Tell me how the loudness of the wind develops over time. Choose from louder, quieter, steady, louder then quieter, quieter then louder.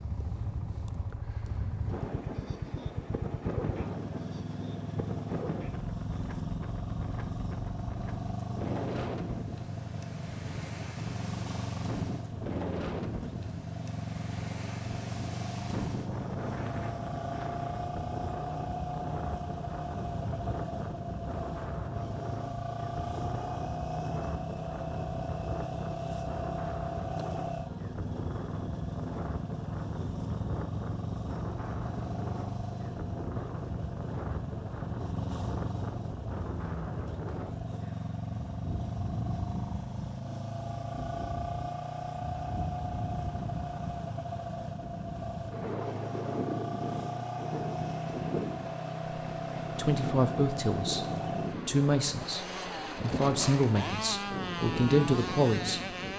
steady.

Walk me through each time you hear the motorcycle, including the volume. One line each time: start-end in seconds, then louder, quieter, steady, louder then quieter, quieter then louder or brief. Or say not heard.
0.0-56.1 steady.